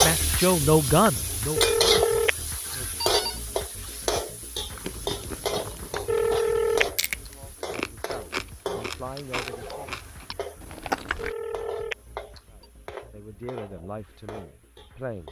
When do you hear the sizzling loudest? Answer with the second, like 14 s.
2 s.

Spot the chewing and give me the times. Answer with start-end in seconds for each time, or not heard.
4.7-11.3.